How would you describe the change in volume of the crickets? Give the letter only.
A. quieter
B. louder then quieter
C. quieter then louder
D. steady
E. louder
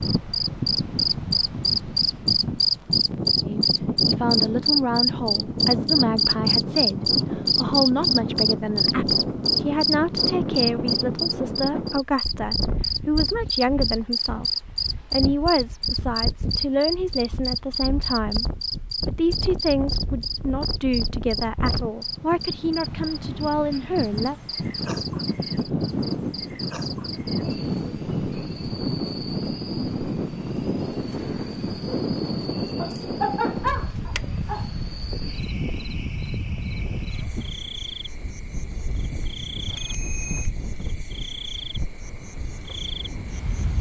A.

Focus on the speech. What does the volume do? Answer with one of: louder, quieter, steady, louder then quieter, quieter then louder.
steady.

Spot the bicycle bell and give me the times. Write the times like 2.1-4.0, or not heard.
39.6-40.5.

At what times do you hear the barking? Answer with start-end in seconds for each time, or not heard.
32.8-34.7.